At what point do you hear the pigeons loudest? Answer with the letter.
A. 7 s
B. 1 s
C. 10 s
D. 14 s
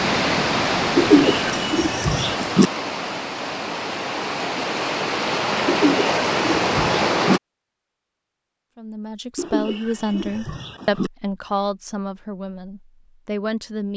B.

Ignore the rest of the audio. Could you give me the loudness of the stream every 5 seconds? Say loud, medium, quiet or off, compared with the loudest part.
loud, loud, off.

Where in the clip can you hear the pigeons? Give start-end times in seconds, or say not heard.
0.9-2.7, 5.7-7.4, 9.3-11.1.